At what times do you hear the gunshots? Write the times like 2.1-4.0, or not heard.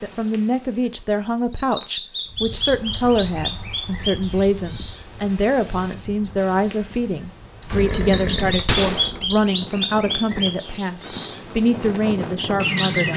8.4-9.1.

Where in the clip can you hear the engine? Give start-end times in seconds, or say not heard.
7.7-9.4.